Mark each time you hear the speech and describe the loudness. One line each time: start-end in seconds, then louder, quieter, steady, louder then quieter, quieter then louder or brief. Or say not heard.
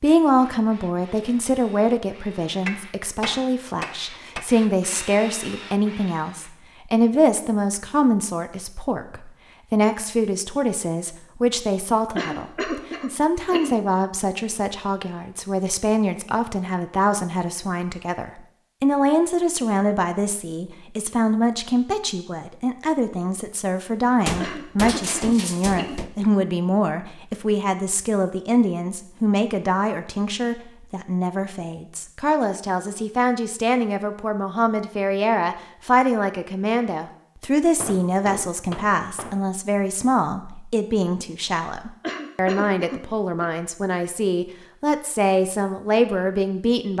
0.0-46.9 steady.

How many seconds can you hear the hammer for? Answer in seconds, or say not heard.
5 s.